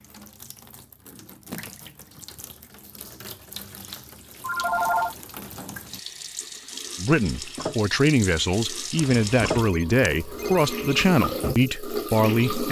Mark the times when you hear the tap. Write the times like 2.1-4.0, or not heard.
0.0-12.6.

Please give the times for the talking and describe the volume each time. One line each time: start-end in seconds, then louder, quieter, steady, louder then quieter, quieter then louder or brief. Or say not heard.
7.0-12.6 steady.